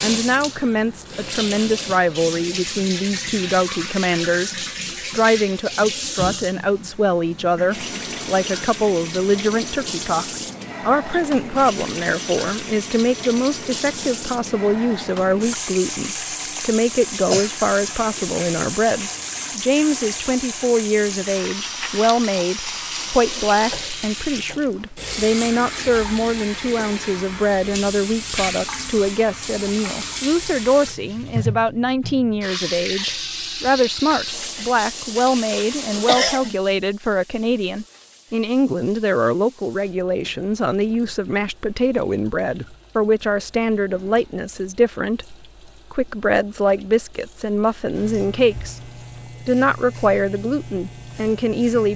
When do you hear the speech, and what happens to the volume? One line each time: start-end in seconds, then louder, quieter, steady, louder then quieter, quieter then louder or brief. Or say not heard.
0.0-51.9 steady.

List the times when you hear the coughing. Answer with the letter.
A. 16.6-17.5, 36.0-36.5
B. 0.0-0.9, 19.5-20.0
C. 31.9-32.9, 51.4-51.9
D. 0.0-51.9
A.